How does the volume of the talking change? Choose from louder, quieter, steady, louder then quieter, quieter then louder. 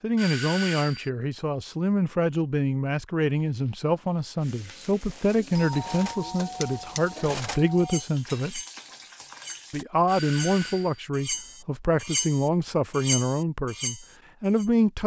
steady.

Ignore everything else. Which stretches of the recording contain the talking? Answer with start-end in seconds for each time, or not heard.
0.0-8.6, 9.7-15.0.